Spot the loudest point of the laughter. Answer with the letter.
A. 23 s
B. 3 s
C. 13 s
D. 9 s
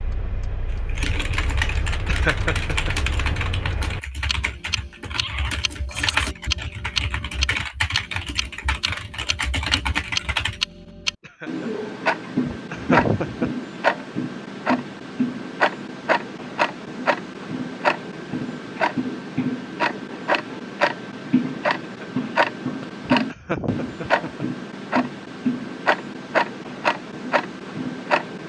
C.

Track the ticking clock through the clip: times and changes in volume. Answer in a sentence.
The ticking clock can be heard from 0.0 to 28.4 s, getting louder.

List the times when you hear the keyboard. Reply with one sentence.
The keyboard can be heard from 0.7 to 10.6 s.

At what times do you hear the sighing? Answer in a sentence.
The sighing can't be heard in this clip.